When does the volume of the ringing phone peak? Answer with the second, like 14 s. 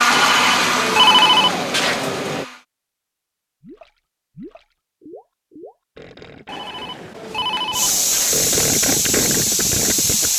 1 s.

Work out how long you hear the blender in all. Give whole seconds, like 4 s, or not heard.
3 s.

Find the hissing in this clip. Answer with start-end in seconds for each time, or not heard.
7.7-10.3.